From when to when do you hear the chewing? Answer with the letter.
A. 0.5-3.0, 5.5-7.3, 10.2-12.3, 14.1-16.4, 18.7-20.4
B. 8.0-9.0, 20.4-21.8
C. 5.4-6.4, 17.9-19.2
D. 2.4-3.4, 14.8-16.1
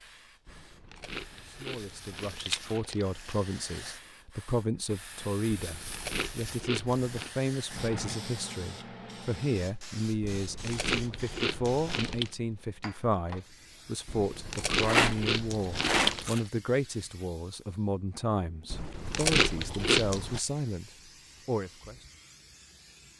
A.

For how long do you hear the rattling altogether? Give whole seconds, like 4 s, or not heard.
2 s.